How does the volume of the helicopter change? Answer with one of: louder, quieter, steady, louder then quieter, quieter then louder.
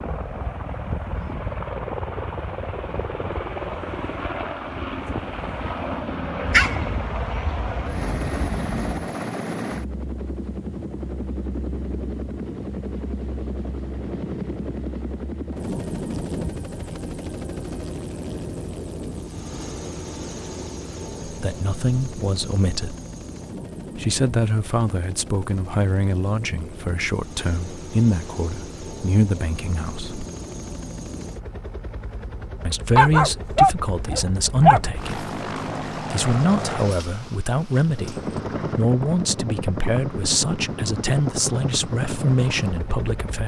quieter then louder.